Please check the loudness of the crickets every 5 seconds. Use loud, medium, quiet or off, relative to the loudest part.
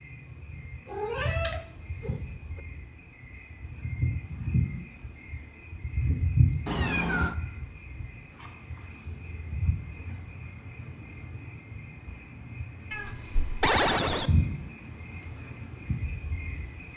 loud, loud, loud, medium.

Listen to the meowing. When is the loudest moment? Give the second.
14 s.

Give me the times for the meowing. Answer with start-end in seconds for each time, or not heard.
0.8-2.2, 6.7-7.3, 12.9-14.3.